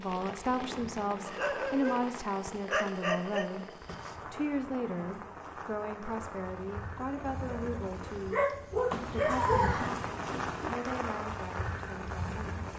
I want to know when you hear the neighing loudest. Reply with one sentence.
The loudest moment of the neighing is at 10 seconds.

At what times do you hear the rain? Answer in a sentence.
You can hear the rain from 0.0 to 12.7 s.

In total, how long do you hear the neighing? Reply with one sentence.
The neighing can be heard for 4 seconds in total.